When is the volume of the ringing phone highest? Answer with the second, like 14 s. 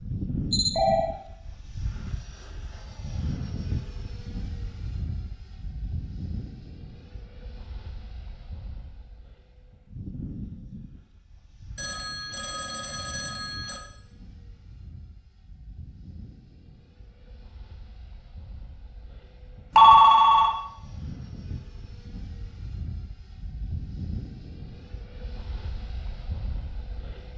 20 s.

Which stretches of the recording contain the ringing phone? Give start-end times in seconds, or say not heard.
0.5-1.1, 11.8-13.8, 19.8-20.6.